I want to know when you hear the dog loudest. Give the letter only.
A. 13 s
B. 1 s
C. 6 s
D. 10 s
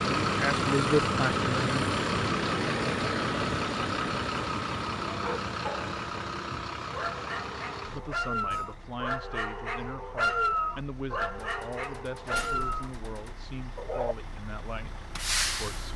D.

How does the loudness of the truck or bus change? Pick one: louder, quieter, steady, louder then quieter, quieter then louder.
quieter then louder.